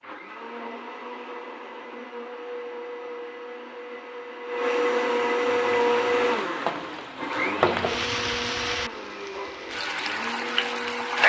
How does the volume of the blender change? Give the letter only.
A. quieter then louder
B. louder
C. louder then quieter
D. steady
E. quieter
C.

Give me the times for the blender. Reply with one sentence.
The blender can be heard from 0.0 to 11.2 s.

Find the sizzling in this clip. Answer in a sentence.
The sizzling can be heard from 5.3 to 11.2 s.